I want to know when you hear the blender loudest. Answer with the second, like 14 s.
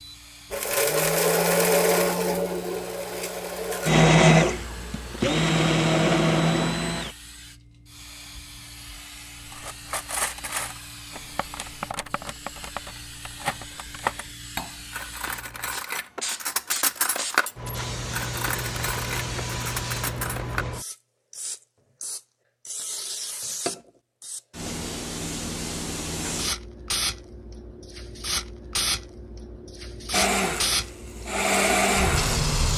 4 s.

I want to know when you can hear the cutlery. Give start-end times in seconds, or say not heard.
9.5-20.6.